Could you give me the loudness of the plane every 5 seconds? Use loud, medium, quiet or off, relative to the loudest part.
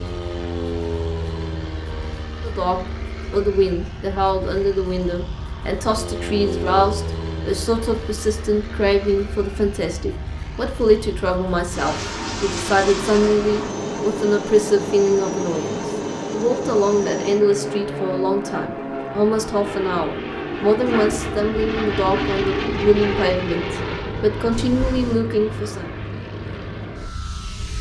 medium, medium, loud, loud, loud, medium.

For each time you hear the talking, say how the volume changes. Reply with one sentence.
The talking can be heard from 2.4 to 25.9 s, at a steady volume.